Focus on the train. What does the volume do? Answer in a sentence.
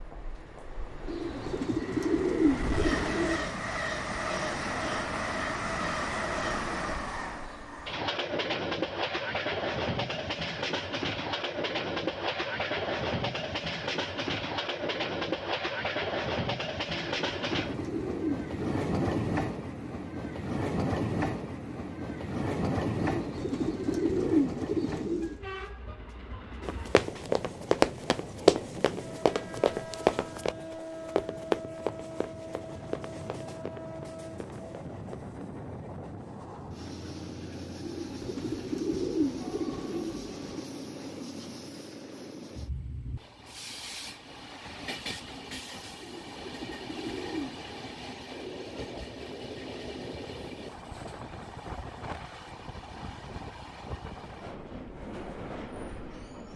The loudness of the train goes down.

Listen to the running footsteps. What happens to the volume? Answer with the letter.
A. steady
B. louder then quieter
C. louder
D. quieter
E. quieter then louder
D.